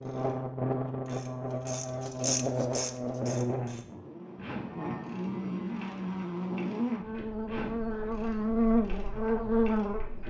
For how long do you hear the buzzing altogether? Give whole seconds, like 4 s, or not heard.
10 s.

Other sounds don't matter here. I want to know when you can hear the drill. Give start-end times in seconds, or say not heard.
not heard.